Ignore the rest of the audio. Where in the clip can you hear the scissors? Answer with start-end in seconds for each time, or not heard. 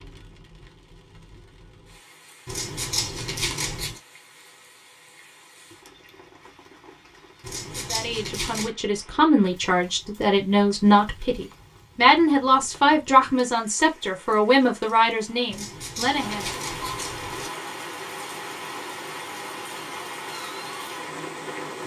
2.5-4.0, 7.4-8.7, 15.5-17.5.